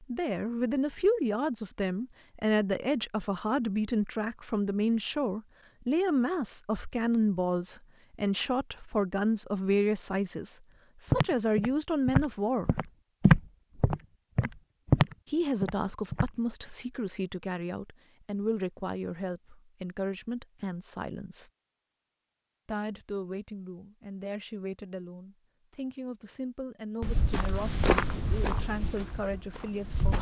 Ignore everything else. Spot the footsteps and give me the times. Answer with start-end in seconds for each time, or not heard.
11.1-16.3, 27.0-30.1.